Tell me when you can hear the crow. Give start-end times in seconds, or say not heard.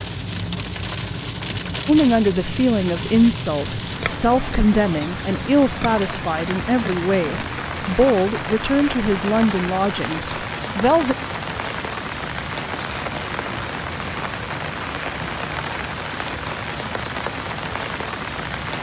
not heard.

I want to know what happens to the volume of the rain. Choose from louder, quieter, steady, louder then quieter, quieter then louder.
steady.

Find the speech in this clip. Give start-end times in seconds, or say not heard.
1.9-11.2.